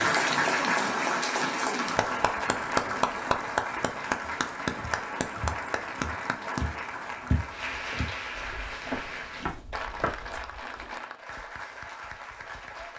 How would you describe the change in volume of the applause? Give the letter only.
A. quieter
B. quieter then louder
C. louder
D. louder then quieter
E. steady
A.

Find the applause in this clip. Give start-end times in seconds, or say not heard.
0.0-12.9.